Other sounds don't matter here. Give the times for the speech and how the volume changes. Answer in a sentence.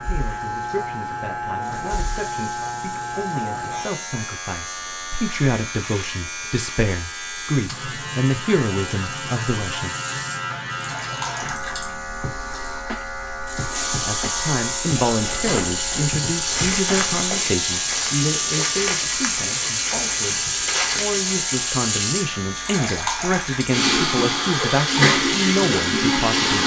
The speech can be heard from 0.0 to 9.9 s, getting louder; and from 14.0 to 26.6 s, getting quieter then louder.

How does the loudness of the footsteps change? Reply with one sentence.
The loudness of the footsteps stays about the same.